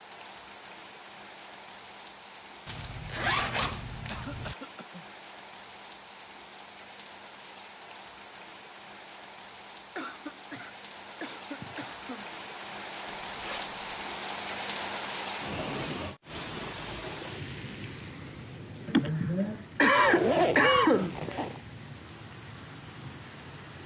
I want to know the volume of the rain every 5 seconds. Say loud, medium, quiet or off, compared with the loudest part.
medium, medium, loud, loud, medium.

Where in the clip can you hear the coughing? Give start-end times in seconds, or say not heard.
4.0-5.0, 9.9-12.3, 18.9-21.4.